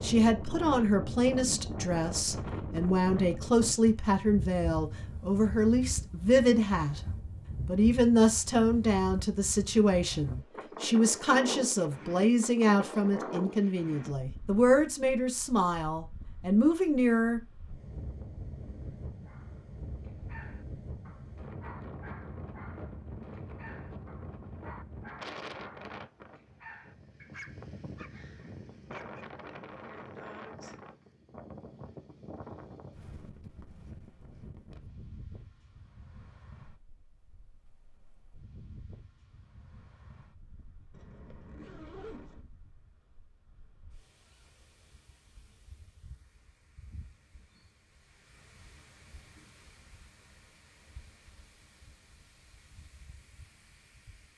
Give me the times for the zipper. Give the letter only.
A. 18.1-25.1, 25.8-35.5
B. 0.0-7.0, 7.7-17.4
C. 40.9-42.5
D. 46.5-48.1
C.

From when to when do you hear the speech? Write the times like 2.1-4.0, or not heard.
0.0-7.0, 7.7-17.4.